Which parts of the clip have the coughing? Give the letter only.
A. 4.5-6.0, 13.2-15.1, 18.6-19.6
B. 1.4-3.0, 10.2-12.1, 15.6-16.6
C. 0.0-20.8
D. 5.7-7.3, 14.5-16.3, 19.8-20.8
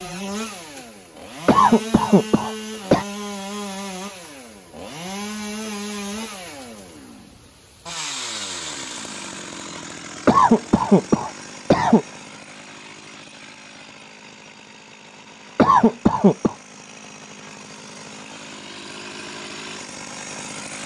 B.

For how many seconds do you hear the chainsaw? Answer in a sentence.
You can hear the chainsaw for 21 seconds altogether.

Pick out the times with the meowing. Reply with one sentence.
You can't hear the meowing here.